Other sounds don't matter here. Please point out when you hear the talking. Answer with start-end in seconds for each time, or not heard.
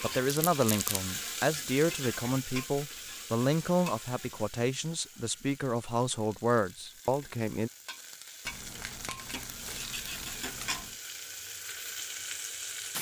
0.0-7.7.